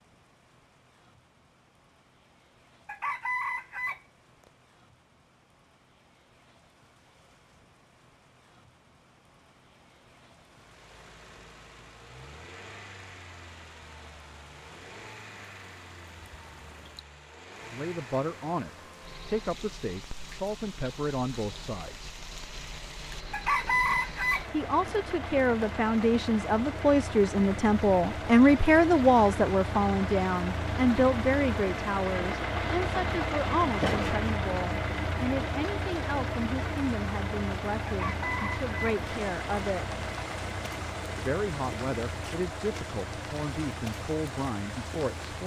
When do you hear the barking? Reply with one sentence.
You can't hear the barking here.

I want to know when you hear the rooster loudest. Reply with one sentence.
The loudest moment of the rooster is at 24 seconds.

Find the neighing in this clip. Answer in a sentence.
You can't hear the neighing here.